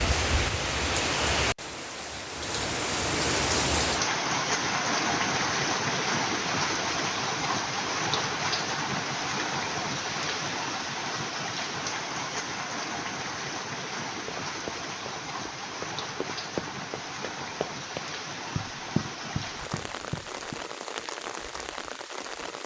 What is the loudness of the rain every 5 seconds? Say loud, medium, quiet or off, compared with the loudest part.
loud, loud, medium, medium, medium.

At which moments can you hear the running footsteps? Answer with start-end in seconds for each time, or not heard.
14.1-20.6.